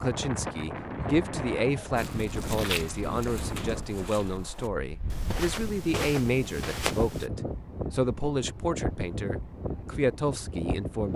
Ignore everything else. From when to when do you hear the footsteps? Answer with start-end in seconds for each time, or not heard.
1.9-7.3.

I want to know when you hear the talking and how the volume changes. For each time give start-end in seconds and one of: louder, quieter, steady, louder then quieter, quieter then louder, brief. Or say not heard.
0.0-11.1 steady.